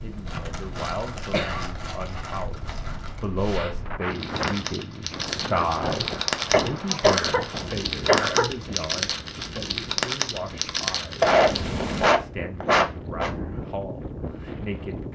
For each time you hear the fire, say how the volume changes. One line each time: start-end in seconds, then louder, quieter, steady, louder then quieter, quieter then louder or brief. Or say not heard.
0.0-12.1 louder.